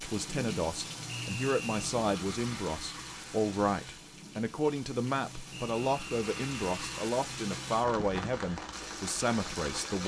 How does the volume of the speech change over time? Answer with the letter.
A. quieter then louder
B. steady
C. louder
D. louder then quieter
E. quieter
B.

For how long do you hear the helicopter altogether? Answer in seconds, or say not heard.
not heard.